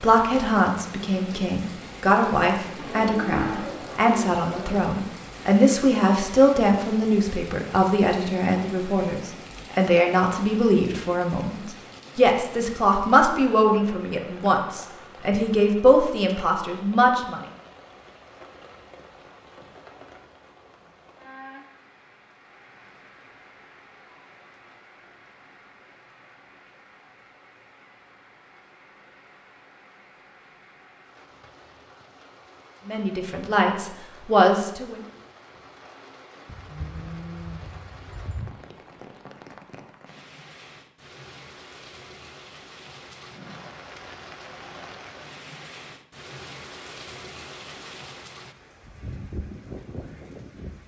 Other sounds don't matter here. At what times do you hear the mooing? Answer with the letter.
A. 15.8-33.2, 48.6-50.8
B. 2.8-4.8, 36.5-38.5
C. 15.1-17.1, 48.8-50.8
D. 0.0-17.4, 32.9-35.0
B.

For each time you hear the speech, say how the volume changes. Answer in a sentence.
You can hear the speech from 0.0 to 17.4 s, at a steady volume; and briefly from 32.9 to 35.0 s.